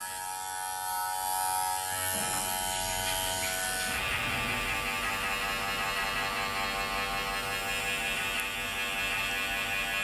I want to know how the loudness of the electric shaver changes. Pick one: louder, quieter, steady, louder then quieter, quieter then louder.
steady.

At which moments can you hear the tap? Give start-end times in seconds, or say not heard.
2.1-4.7.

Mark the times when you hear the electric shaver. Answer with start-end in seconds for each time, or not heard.
0.0-9.9.